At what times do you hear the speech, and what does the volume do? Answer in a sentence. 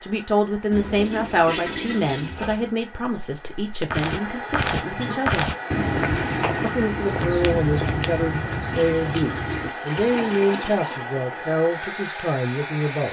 The speech can be heard from 0.0 to 5.5 s, getting quieter; and from 6.6 to 13.0 s, at a steady volume.